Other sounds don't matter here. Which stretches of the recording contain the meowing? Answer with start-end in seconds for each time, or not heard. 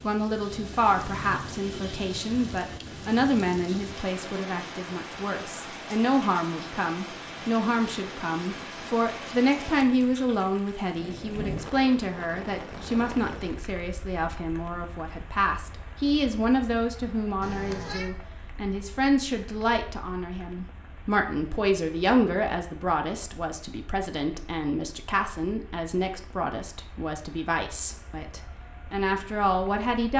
17.4-18.1.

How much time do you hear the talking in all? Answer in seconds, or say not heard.
30 s.